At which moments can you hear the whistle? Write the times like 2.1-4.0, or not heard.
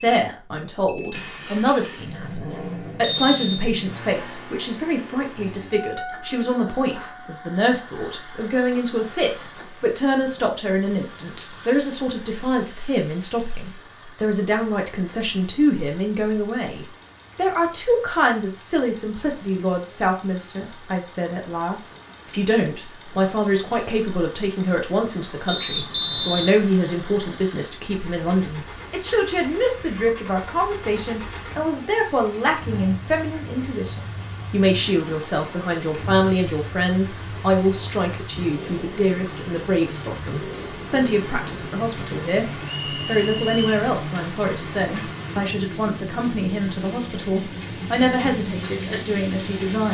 3.0-3.6, 25.4-26.6, 42.6-43.8.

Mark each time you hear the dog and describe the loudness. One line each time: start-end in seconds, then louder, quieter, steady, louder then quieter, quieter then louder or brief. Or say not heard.
not heard.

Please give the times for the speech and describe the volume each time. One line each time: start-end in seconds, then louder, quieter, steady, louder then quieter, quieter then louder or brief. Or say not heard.
0.0-49.8 steady.